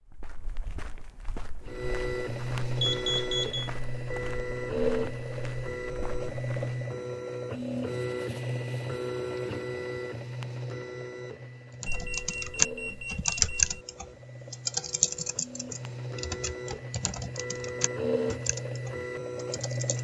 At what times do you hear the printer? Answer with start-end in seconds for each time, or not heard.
1.6-19.9.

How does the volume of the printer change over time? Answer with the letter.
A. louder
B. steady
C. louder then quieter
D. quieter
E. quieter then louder
E.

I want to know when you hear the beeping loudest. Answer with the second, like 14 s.
3 s.